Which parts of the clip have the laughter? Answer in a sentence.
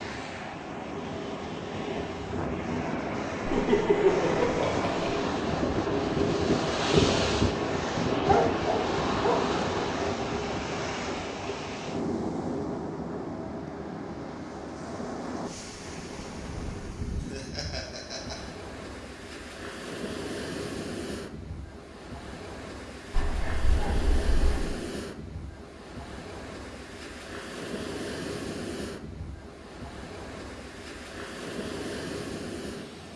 The laughter can be heard from 3.5 to 5.2 s and from 17.3 to 18.4 s.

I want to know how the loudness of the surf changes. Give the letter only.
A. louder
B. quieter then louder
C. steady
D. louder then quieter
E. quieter
E.